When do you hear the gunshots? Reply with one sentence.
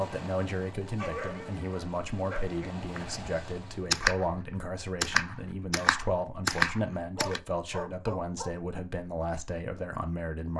You can hear the gunshots from 3.0 to 7.4 s.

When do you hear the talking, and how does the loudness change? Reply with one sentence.
The talking can be heard from 0.0 to 10.5 s, at a steady volume.